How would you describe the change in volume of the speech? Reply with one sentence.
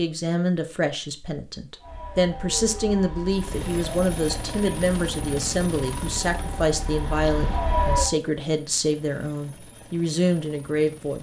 The volume of the speech stays about the same.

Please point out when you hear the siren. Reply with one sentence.
The siren can be heard from 1.8 to 8.1 s.